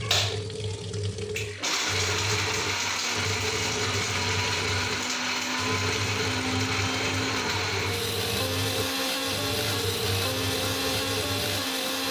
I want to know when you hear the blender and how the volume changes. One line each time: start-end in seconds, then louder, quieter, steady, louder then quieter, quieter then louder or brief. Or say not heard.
0.0-12.0 steady.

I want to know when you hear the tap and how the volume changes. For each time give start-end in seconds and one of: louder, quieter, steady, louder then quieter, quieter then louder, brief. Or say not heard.
0.0-11.8 steady.